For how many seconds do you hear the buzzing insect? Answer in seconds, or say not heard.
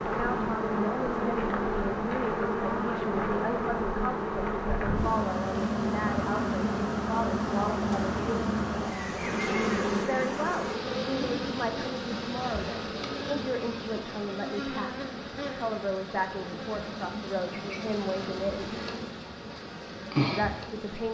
21 s.